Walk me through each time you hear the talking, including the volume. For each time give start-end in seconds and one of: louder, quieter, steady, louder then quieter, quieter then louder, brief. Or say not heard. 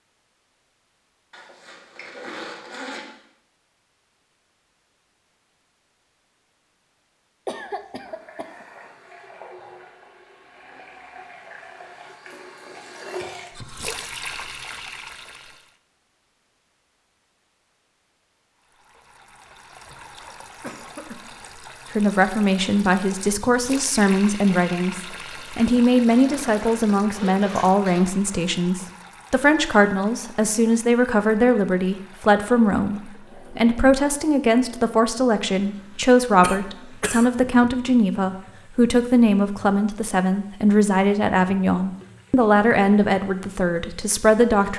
21.9-44.7 steady.